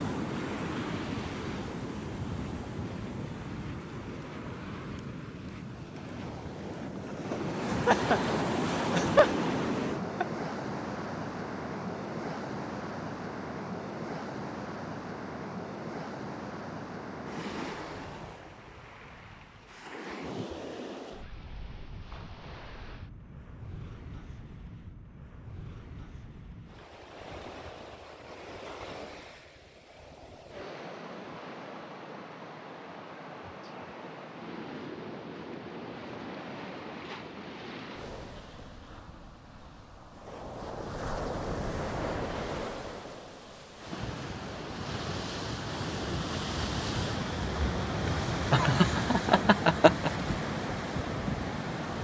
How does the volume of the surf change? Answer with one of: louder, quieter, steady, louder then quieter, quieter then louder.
quieter then louder.